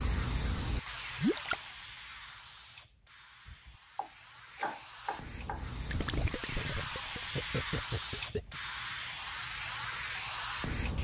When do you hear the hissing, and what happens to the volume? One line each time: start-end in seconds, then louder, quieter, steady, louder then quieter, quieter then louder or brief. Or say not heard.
0.0-10.9 quieter then louder.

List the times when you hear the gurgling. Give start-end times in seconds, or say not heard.
1.1-1.6, 5.9-8.6.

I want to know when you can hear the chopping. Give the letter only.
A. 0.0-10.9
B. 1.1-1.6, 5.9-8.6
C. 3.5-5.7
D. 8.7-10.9
C.